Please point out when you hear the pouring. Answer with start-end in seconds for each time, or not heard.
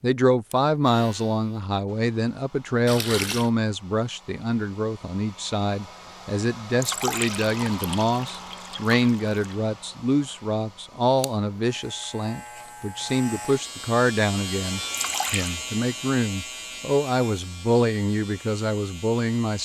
2.9-3.5, 6.8-9.6, 14.9-15.6.